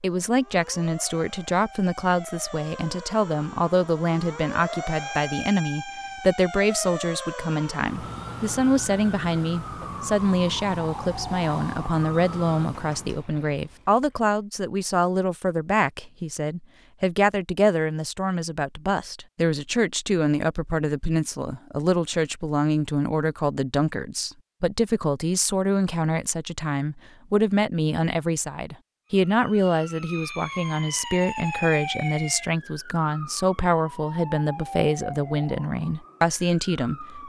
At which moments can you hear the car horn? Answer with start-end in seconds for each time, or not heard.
not heard.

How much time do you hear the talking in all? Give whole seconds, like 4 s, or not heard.
37 s.